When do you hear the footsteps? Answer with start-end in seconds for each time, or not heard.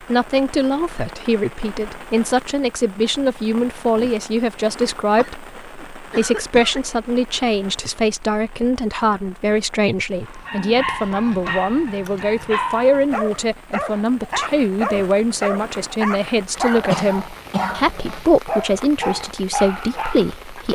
not heard.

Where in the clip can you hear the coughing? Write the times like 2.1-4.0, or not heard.
5.2-6.8, 16.6-18.2.